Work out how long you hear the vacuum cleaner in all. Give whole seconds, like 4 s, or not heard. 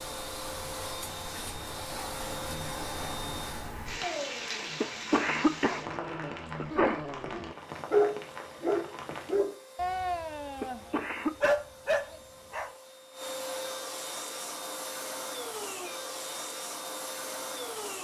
14 s.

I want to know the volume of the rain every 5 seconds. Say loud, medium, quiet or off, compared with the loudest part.
loud, loud, off, off.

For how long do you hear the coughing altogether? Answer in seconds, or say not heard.
3 s.